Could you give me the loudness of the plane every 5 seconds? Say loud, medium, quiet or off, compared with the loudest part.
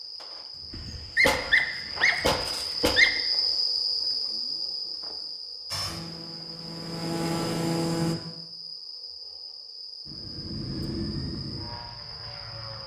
off, loud, medium.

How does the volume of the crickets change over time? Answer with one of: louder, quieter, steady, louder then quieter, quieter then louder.
louder then quieter.